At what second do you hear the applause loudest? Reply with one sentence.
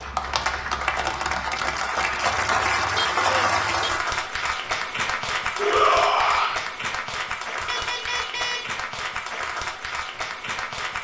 The loudest moment of the applause is at 3 seconds.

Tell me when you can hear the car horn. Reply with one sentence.
The car horn can be heard from 2.4 to 3.9 s and from 7.7 to 8.7 s.